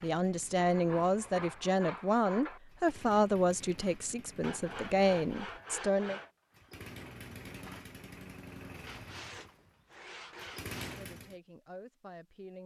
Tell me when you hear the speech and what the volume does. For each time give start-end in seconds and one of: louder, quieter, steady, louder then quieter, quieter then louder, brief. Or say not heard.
0.0-6.2 quieter then louder
10.8-12.6 brief.